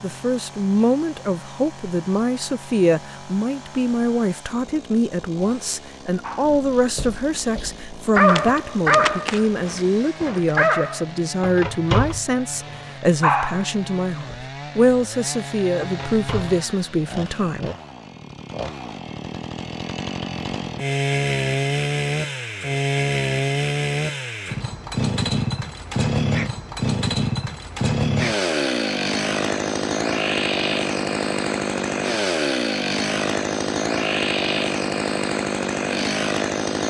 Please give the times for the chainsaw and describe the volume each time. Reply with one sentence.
You can hear the chainsaw from 0.0 to 36.8 s, getting louder.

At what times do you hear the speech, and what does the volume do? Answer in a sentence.
The speech can be heard from 0.0 to 17.7 s, at a steady volume.